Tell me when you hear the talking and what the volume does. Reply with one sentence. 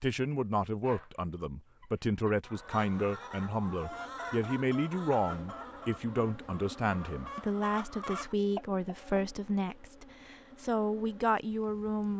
The talking can be heard from 0.0 to 12.1 s, at a steady volume.